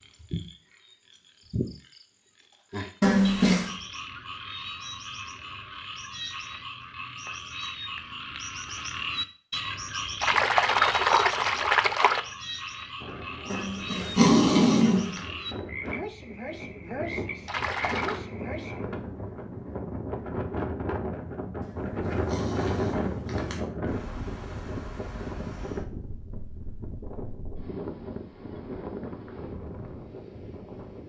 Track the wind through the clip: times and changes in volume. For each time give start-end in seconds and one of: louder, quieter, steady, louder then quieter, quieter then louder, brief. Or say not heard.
12.9-31.0 louder then quieter.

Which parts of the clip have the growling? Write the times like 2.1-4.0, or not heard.
3.0-3.7, 13.5-15.2, 21.6-23.6.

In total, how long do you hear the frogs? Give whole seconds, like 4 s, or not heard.
19 s.